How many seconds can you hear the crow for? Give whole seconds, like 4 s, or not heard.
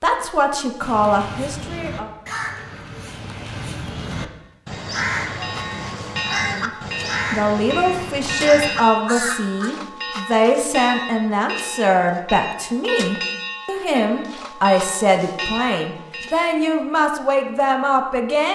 9 s.